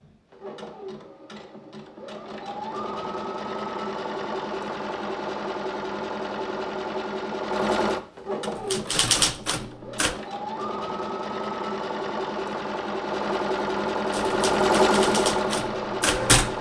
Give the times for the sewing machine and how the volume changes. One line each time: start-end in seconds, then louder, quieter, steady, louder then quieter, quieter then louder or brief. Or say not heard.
0.0-16.5 louder.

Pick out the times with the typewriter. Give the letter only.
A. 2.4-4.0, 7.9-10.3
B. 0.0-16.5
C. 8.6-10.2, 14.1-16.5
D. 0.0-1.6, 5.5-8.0
C.